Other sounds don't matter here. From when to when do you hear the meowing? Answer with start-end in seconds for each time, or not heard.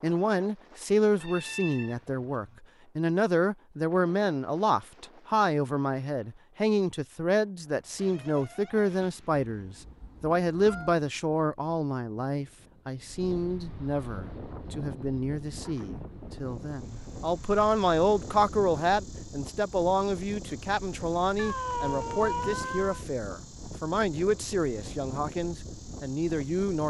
1.2-2.6, 9.6-10.9, 21.4-23.1.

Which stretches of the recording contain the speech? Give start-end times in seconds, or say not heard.
0.0-26.8.